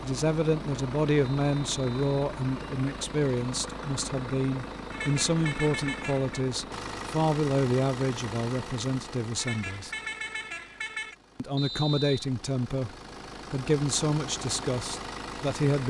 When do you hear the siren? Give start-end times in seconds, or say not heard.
not heard.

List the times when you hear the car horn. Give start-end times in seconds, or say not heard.
4.9-6.4, 9.3-11.2.